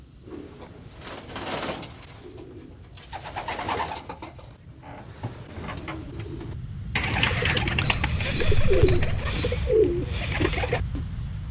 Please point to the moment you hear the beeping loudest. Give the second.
8 s.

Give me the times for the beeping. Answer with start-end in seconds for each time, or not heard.
7.8-9.4.